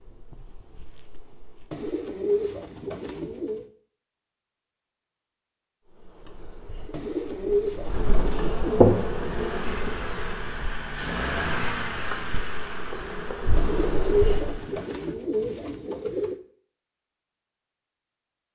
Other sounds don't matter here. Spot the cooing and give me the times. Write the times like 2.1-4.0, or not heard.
1.7-3.6, 6.9-8.8, 13.6-16.4.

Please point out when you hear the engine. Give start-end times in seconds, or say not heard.
8.8-15.2.